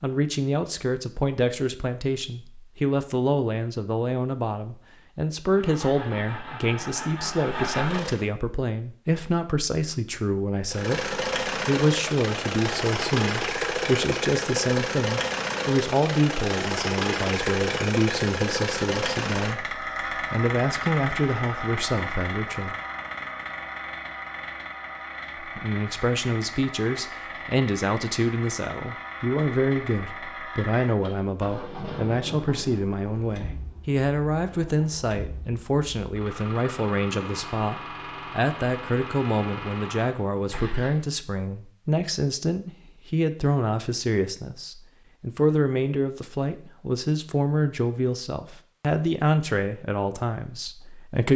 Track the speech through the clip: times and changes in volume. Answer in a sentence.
The speech can be heard from 0.0 to 22.8 s, at a steady volume; and from 25.4 to 51.3 s, at a steady volume.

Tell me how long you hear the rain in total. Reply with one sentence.
You can't hear the rain here.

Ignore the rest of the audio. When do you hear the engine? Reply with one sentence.
You can hear the engine from 5.5 to 8.2 s and from 10.7 to 41.0 s.